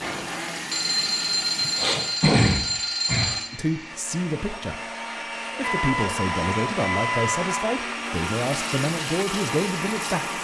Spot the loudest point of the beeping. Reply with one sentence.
The volume of the beeping peaks at 2 seconds.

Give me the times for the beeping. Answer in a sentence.
You can hear the beeping from 0.7 to 3.5 s and from 5.6 to 7.5 s.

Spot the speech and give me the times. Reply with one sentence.
You can hear the speech from 3.5 to 4.8 s and from 5.5 to 10.3 s.